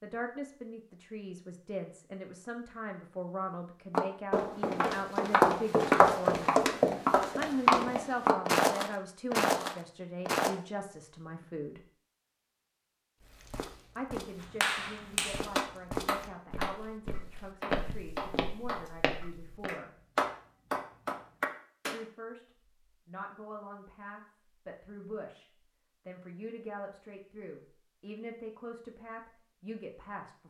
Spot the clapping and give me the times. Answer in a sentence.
You can hear the clapping from 14.4 to 22.1 s.